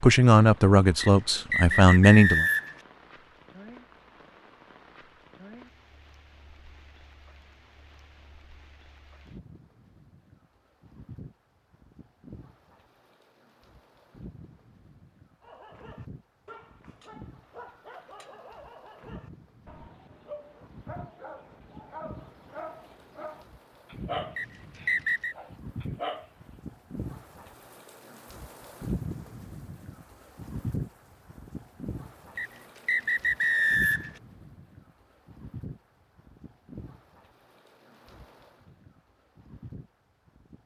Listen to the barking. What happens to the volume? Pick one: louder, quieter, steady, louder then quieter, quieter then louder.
louder.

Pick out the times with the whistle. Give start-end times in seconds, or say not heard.
1.0-2.8, 24.4-25.4, 32.4-34.1.